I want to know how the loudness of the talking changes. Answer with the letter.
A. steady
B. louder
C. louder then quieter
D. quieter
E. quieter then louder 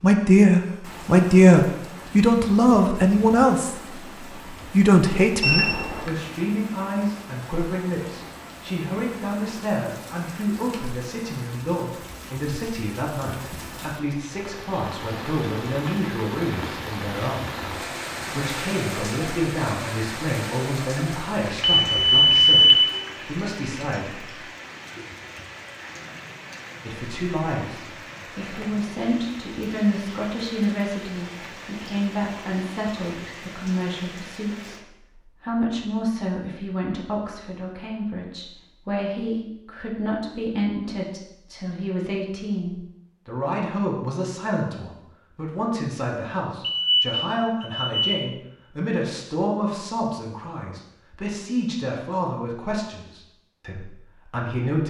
D.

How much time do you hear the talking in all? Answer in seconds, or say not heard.
51 s.